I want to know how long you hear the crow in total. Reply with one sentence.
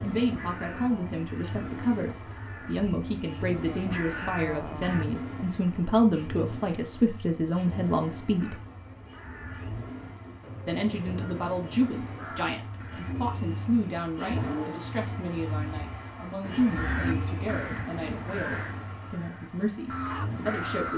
The crow can be heard for 14 seconds in total.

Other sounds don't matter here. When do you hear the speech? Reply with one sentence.
You can hear the speech from 0.0 to 8.6 s and from 10.7 to 20.9 s.